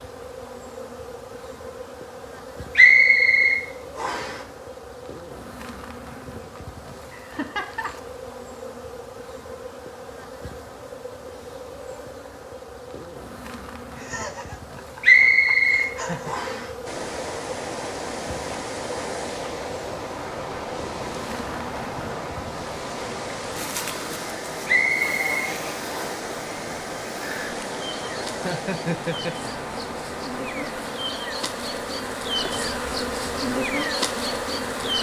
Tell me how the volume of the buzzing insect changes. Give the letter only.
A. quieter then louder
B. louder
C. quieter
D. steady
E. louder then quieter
B.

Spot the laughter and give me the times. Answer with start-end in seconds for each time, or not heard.
7.1-8.0, 13.9-16.4, 28.3-29.5.